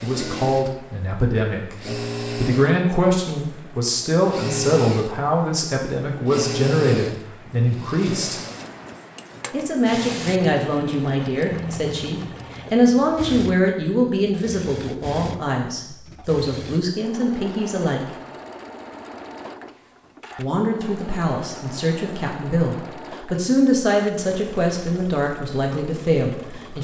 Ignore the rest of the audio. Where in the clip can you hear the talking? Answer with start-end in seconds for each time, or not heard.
0.0-1.8, 2.4-8.4, 9.5-18.0, 20.4-26.7.